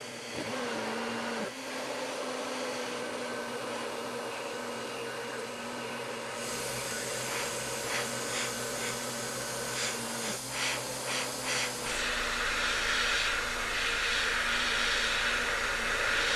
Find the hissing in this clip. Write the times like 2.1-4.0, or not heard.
0.0-16.3.